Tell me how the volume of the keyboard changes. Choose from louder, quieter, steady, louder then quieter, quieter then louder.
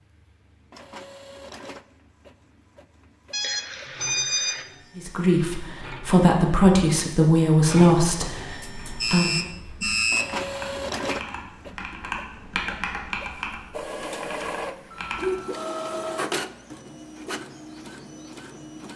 louder then quieter.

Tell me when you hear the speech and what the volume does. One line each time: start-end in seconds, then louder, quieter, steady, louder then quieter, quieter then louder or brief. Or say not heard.
5.0-9.4 louder then quieter.